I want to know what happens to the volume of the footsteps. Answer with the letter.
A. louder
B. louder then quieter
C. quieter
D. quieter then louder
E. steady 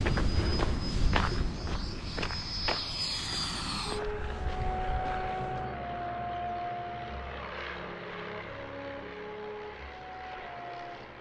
C.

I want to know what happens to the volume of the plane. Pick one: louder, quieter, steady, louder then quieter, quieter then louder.
louder then quieter.